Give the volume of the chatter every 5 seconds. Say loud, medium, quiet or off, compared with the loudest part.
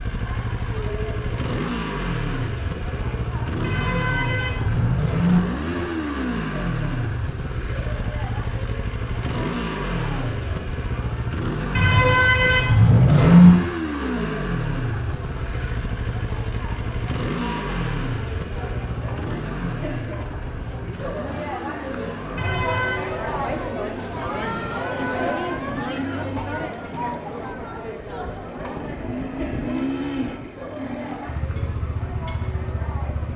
medium, medium, medium, medium, loud, loud, medium.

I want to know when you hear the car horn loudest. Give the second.
13 s.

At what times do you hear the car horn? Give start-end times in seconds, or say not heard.
3.6-5.4, 11.8-13.5, 22.4-23.1.